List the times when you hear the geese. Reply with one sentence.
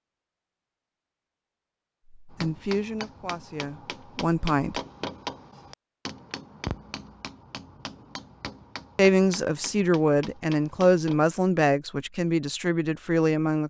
The geese can't be heard in this clip.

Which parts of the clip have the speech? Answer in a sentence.
You can hear the speech from 2.4 to 4.8 s and from 8.9 to 13.6 s.